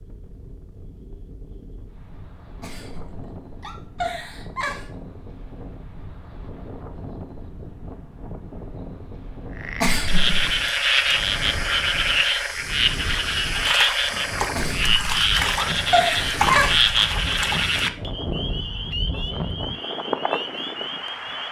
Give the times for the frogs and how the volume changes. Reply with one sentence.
The frogs can be heard from 9.6 to 21.4 s, getting quieter.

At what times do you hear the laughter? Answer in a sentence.
The laughter can be heard from 2.6 to 4.9 s, from 9.8 to 10.6 s and from 14.6 to 16.9 s.